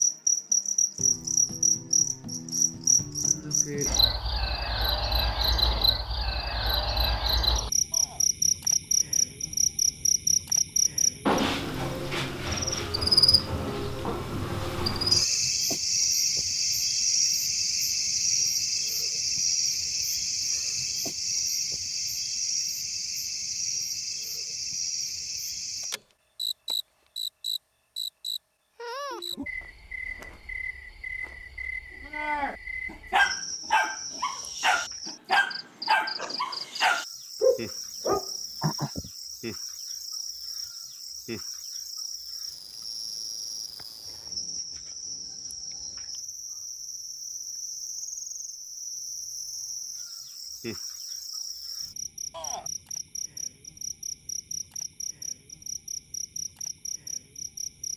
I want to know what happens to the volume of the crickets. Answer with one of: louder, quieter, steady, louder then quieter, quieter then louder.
quieter.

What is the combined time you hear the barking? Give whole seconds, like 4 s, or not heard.
7 s.